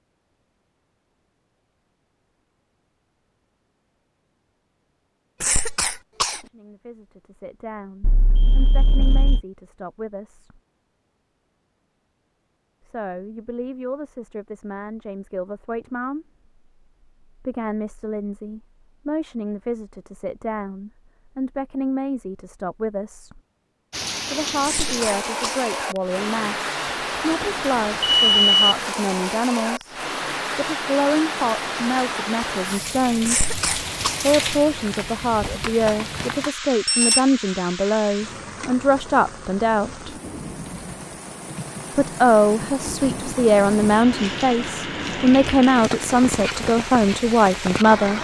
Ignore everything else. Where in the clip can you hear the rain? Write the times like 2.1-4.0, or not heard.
23.9-48.1.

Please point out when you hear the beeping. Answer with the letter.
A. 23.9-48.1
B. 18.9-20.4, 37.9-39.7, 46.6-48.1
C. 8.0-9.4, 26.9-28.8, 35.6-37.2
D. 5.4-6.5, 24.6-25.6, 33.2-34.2
C.